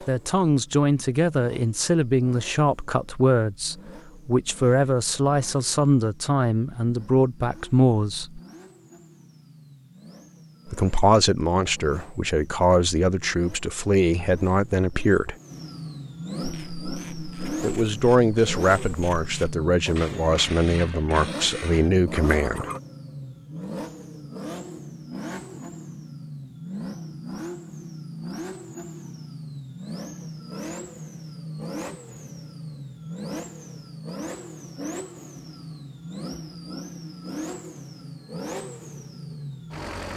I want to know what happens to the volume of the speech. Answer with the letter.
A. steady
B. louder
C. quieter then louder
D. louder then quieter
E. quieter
A.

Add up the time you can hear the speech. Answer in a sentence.
You can hear the speech for 18 seconds altogether.